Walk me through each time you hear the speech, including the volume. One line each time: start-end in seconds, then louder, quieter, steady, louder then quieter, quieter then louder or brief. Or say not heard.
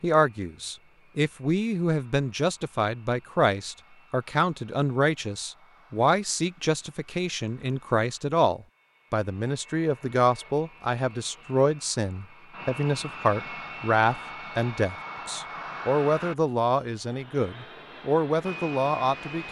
0.0-19.4 steady.